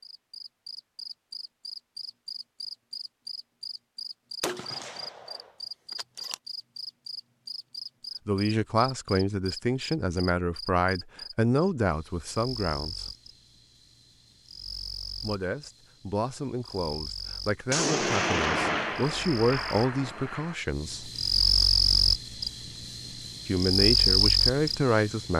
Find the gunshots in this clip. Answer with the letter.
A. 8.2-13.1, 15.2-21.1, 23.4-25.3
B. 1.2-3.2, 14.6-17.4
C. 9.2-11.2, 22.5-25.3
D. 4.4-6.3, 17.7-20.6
D.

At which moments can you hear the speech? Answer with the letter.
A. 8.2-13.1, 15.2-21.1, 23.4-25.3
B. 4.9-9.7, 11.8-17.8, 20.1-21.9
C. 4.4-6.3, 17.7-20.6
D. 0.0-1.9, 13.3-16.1
A.